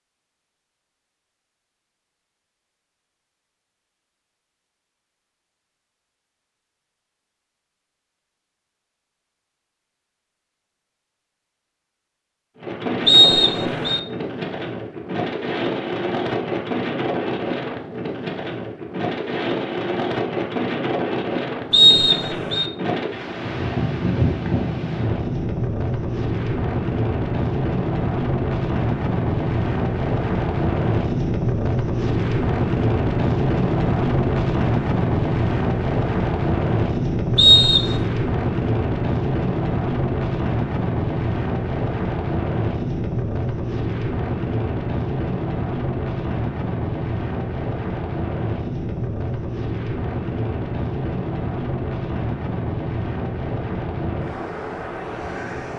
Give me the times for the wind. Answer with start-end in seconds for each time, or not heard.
12.6-55.7.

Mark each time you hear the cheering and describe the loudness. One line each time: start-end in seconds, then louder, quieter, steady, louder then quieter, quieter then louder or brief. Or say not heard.
not heard.